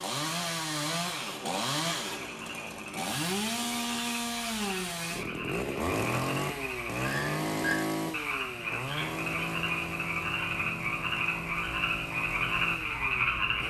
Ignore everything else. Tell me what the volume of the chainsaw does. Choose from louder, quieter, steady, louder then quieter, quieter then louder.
quieter.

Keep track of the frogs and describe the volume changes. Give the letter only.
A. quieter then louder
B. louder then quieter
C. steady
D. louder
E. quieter
D.